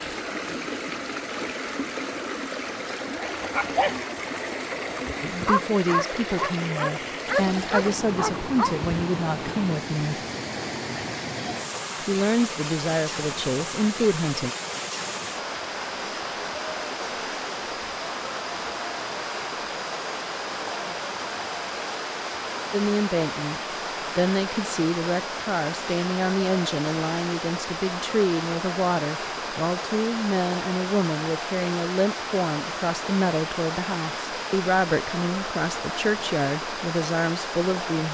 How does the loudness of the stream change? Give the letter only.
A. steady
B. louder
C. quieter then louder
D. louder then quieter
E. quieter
A.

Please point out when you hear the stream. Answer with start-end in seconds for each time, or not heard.
0.0-38.0.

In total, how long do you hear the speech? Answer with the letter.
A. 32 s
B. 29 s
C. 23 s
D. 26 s
C.